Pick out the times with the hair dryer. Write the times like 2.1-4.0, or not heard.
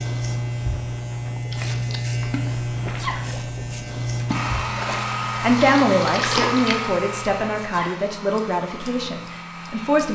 4.2-10.1.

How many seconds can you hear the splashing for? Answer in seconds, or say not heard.
5 s.